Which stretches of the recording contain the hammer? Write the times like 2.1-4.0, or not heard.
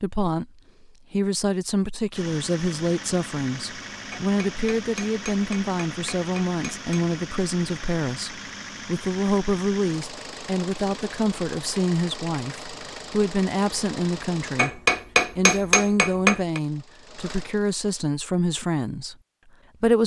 4.1-7.0, 14.6-16.6.